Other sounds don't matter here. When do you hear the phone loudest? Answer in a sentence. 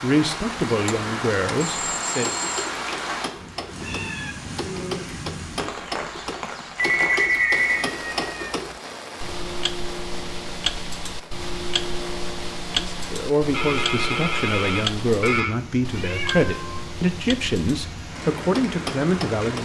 The volume of the phone peaks at 7 seconds.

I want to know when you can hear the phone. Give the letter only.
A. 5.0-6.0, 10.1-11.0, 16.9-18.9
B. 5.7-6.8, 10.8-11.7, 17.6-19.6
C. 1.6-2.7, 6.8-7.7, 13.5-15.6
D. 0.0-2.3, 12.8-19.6
C.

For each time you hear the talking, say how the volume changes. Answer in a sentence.
You can hear the talking briefly from 0.0 to 2.3 s; and from 12.8 to 19.6 s, at a steady volume.